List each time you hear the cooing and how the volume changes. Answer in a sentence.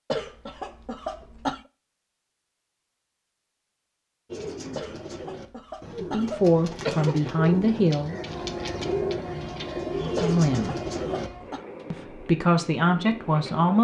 The cooing can be heard from 4.3 to 11.3 s, getting louder.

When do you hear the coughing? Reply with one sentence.
You can hear the coughing from 0.1 to 1.6 s, from 4.8 to 7.2 s and from 10.2 to 11.7 s.